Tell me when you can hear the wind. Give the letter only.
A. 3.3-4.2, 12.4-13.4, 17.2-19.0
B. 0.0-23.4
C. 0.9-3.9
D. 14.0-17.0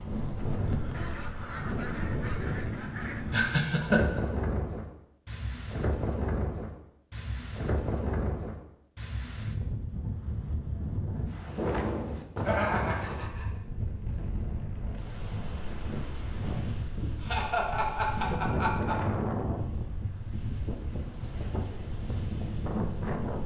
B.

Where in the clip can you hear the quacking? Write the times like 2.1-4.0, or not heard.
0.9-3.9.